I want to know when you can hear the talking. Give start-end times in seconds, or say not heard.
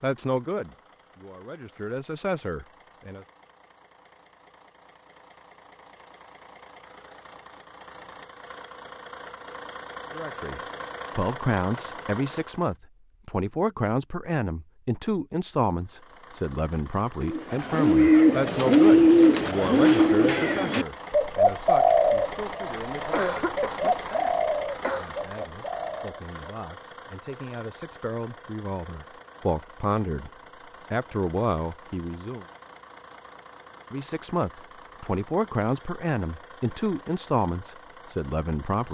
0.0-3.2, 10.1-30.3, 30.9-32.5, 33.9-38.9.